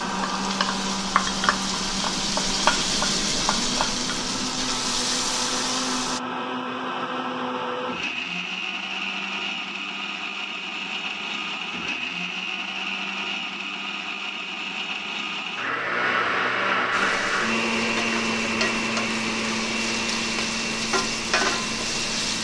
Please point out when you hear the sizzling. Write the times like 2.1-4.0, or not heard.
0.0-6.2, 16.9-22.4.